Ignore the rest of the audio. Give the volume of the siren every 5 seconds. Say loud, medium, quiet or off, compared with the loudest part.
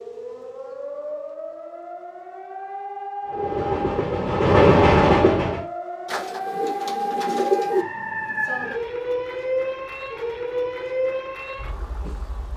medium, loud, loud.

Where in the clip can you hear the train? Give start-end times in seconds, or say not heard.
3.2-5.7.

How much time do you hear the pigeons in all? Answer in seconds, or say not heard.
2 s.